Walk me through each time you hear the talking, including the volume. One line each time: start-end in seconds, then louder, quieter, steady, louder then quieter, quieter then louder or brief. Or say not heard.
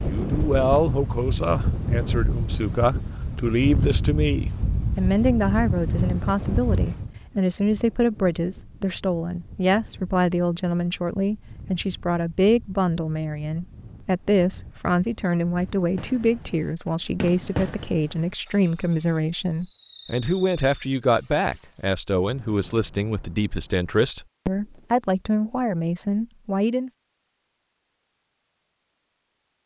0.0-26.9 steady.